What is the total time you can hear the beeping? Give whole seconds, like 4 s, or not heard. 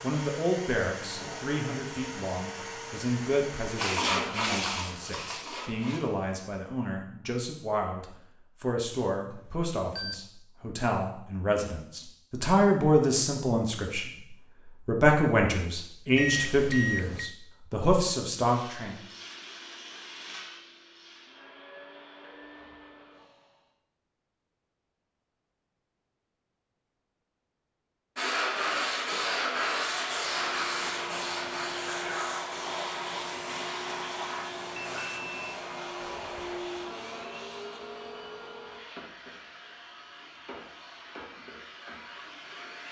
3 s.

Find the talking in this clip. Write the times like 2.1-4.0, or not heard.
0.0-14.1, 14.8-18.9.